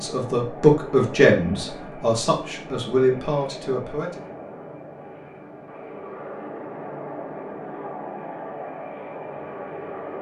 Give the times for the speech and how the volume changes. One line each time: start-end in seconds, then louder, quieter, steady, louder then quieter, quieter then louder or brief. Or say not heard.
0.0-4.2 quieter.